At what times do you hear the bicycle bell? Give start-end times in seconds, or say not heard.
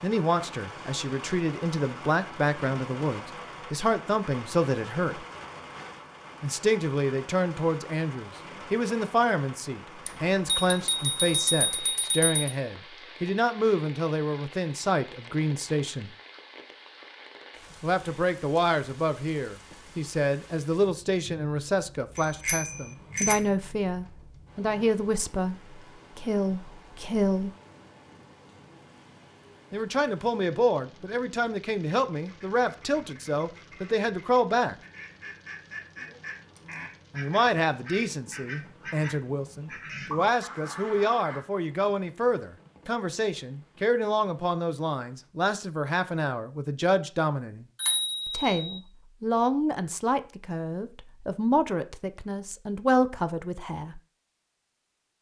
10.1-12.5, 22.4-23.4, 47.8-48.8.